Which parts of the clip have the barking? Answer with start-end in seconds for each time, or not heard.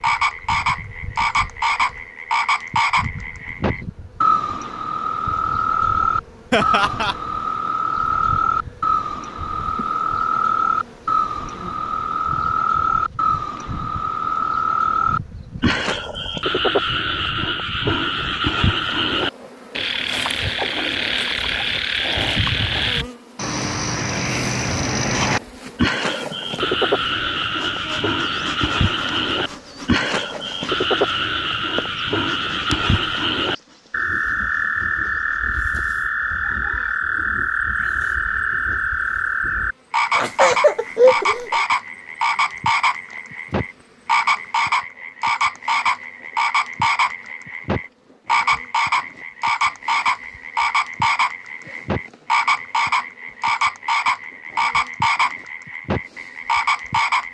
not heard.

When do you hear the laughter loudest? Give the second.
41 s.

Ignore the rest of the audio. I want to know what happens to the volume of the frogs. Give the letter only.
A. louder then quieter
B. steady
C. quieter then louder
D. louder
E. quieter
B.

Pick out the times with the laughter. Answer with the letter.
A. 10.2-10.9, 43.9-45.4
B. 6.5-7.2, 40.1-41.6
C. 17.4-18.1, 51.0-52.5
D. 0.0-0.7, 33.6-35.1
B.